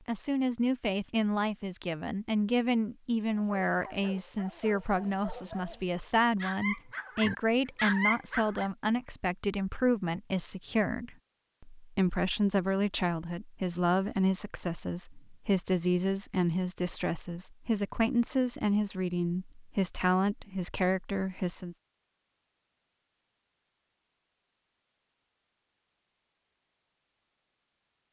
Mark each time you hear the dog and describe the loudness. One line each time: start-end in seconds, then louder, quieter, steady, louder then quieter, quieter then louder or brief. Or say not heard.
3.2-8.7 louder.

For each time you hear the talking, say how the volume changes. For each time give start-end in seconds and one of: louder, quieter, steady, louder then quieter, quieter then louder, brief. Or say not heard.
0.1-21.8 steady.